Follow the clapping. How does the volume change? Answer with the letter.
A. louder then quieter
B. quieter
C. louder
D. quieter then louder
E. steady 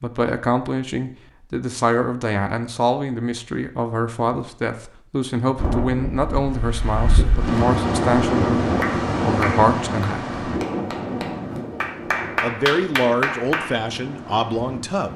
D.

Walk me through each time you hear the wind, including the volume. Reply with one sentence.
The wind can be heard from 5.5 to 15.1 s, getting louder then quieter.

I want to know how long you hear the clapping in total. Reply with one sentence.
The clapping can be heard for 5 seconds in total.